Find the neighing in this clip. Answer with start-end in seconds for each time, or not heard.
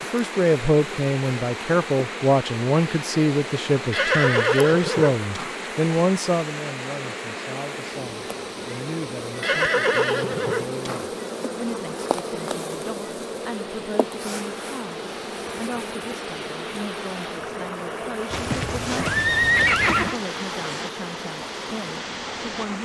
3.9-5.5, 9.4-11.1, 18.3-20.2.